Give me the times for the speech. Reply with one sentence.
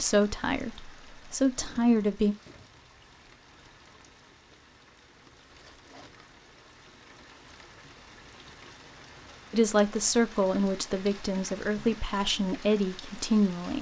The speech can be heard from 0.0 to 2.4 s and from 9.5 to 13.7 s.